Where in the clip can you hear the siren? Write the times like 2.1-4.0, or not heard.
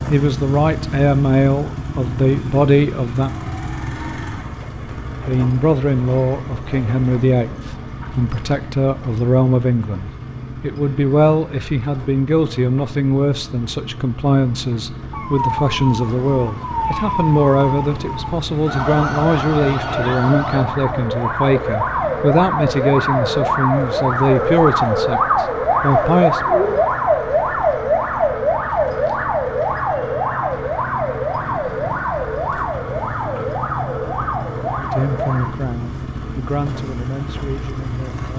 15.1-35.5.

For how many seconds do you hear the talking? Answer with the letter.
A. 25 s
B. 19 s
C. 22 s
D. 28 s
D.